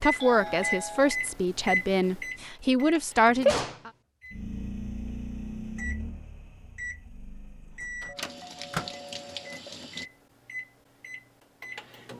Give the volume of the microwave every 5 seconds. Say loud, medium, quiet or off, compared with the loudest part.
loud, medium, quiet.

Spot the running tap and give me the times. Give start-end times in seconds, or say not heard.
8.2-10.1.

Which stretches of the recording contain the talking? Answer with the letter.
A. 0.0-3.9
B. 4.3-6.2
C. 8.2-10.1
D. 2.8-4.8
A.